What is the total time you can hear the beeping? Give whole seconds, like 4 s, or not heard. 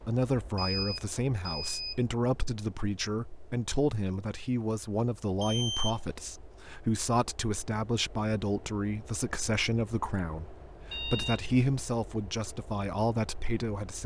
3 s.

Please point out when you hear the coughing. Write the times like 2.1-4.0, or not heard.
not heard.